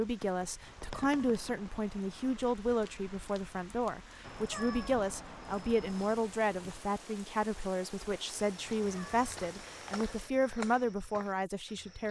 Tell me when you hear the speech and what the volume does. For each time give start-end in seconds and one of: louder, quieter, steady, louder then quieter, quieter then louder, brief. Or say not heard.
0.0-12.0 steady.